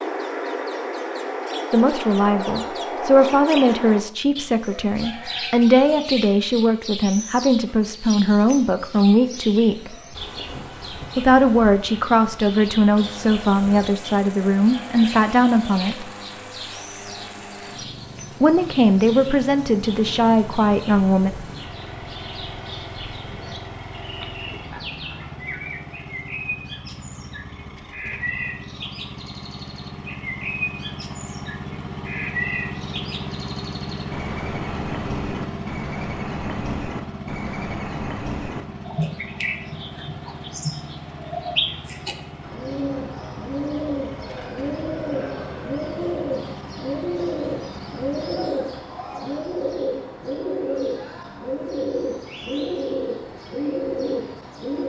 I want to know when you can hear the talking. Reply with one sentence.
The talking can be heard from 1.7 to 9.9 s, from 11.2 to 16.1 s and from 18.4 to 21.3 s.